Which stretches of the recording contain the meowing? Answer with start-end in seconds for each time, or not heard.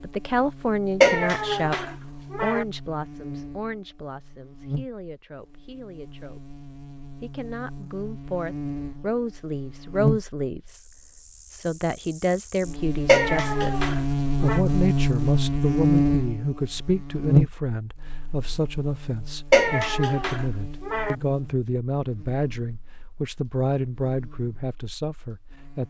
1.0-2.6, 13.1-14.6, 19.5-21.1.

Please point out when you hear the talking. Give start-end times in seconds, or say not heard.
0.0-6.5, 7.2-10.8, 11.5-25.8.